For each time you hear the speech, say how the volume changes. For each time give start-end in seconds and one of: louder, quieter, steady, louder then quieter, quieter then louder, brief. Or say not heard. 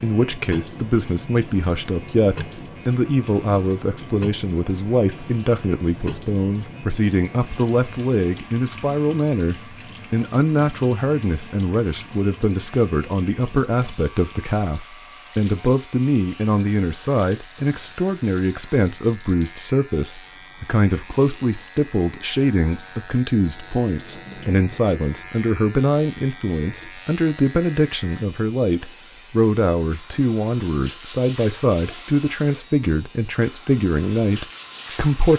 0.0-35.3 steady.